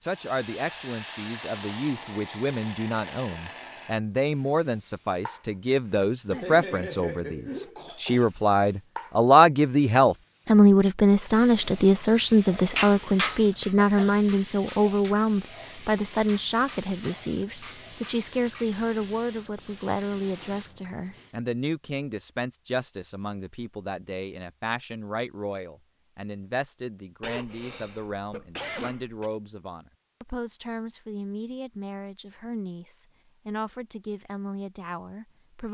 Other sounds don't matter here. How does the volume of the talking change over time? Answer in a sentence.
The loudness of the talking goes up, then down.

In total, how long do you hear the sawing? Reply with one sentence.
You can't hear the sawing here.